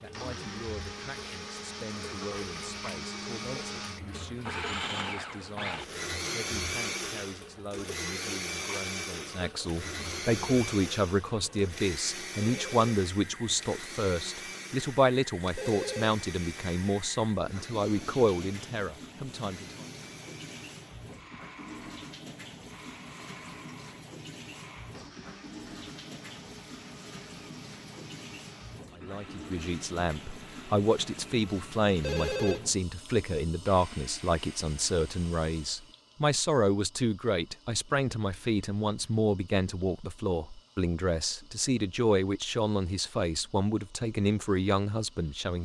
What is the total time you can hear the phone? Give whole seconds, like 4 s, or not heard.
2 s.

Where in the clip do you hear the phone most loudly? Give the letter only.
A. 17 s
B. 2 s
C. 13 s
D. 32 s
D.